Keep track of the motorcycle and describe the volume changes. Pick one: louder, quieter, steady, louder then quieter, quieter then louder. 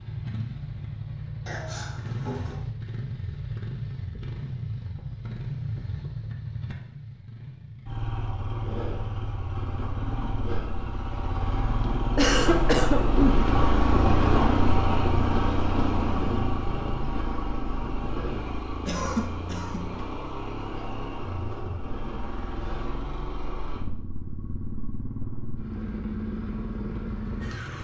louder then quieter.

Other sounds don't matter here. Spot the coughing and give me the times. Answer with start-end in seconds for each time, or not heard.
1.4-2.6, 12.2-13.4, 18.9-19.9.